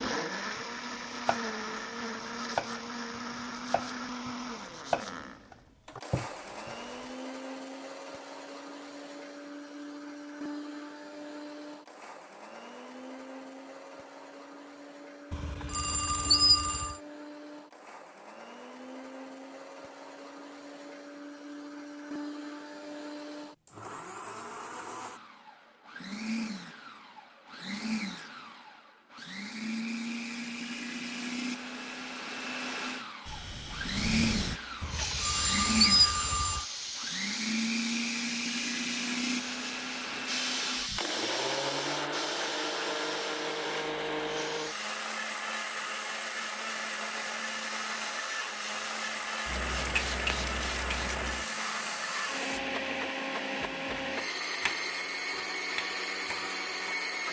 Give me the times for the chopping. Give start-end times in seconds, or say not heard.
0.6-1.4, 2.2-6.7, 54.6-57.2.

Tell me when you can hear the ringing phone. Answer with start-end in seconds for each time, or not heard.
15.3-17.0, 34.8-36.6.